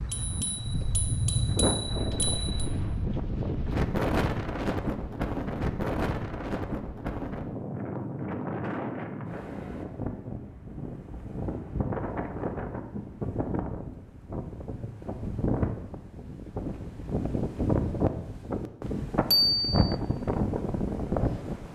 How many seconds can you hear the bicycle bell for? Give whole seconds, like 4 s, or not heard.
3 s.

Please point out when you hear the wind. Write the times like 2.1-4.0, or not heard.
0.0-21.7.